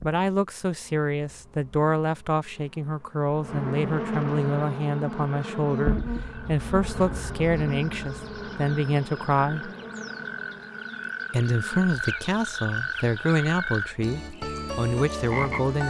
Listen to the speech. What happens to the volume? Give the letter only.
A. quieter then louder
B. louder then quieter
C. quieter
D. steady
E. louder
D.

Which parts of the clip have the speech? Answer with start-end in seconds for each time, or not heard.
0.0-9.7, 11.3-15.8.